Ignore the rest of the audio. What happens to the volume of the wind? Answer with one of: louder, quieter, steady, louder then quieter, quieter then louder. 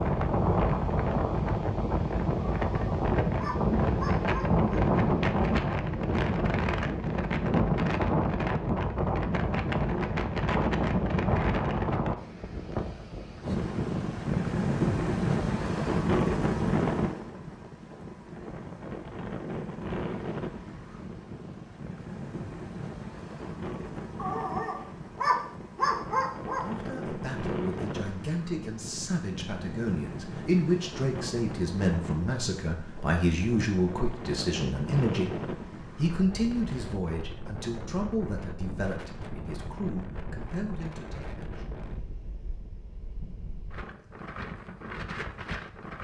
quieter.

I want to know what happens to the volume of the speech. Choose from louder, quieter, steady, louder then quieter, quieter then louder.
louder then quieter.